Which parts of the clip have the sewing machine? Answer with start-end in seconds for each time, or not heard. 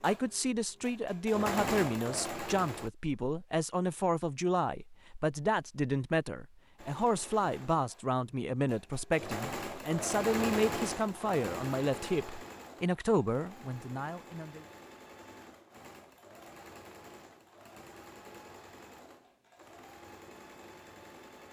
0.0-2.9, 6.8-21.4.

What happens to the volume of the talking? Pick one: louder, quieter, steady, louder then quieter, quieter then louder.
steady.